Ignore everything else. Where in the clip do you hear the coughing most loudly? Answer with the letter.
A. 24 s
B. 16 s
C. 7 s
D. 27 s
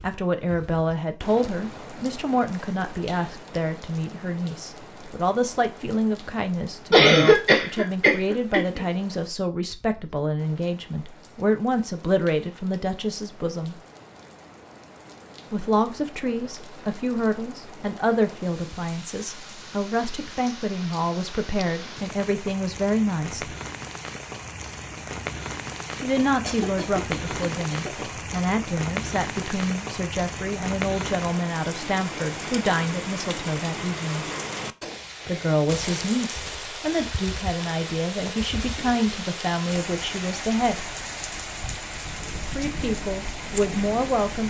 C.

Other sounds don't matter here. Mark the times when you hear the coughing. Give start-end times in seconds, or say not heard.
6.9-8.8, 26.4-28.1.